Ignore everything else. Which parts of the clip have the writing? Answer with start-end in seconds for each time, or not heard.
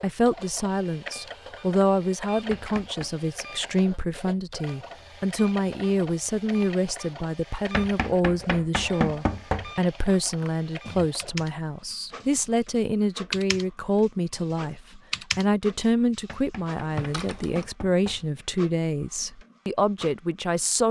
not heard.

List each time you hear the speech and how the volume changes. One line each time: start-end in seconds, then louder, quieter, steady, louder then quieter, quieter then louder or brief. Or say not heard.
0.0-20.8 steady.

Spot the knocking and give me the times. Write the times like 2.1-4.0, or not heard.
2.5-3.1, 7.7-9.7, 16.2-18.2.